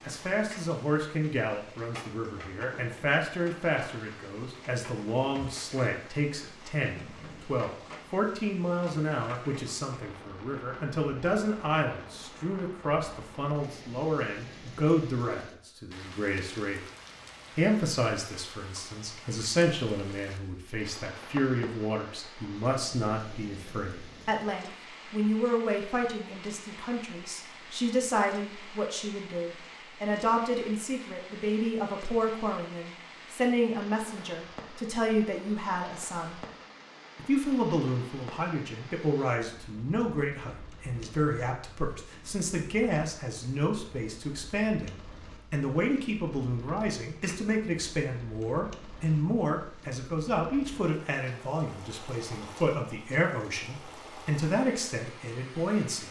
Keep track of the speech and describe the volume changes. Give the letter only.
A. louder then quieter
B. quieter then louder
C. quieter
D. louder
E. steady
E.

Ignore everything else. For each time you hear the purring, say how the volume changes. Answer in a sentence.
You can't hear the purring here.